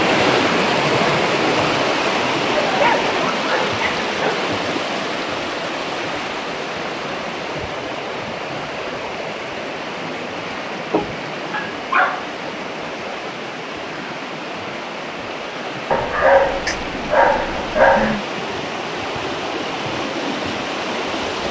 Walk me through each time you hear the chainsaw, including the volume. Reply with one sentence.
The chainsaw can't be heard in this clip.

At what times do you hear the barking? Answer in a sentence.
The barking can be heard from 2.5 to 4.4 s, from 10.9 to 12.3 s and from 15.9 to 18.2 s.